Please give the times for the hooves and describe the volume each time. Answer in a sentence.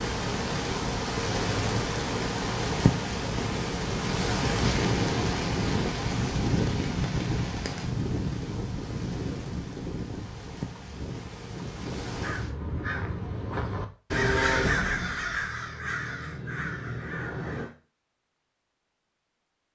You can hear the hooves from 3.1 to 12.9 s, getting quieter.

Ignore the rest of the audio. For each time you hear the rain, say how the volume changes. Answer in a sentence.
The rain can be heard from 0.0 to 12.6 s, getting quieter.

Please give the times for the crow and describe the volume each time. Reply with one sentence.
The crow can be heard from 12.1 to 17.7 s, getting louder then quieter.